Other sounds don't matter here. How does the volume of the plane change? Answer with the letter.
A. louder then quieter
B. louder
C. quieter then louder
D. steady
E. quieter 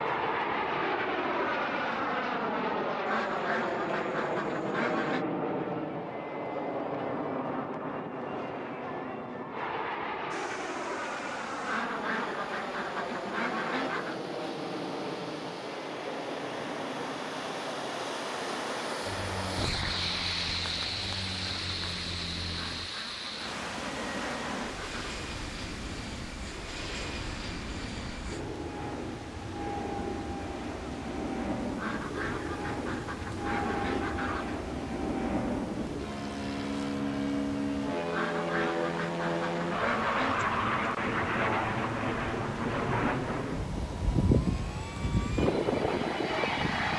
C.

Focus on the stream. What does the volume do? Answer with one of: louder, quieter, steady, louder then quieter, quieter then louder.
louder then quieter.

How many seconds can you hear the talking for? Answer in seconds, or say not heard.
not heard.